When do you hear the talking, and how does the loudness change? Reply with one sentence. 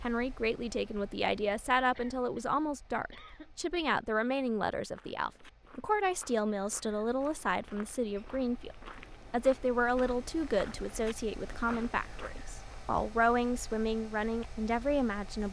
The talking can be heard from 0.0 to 15.4 s, at a steady volume.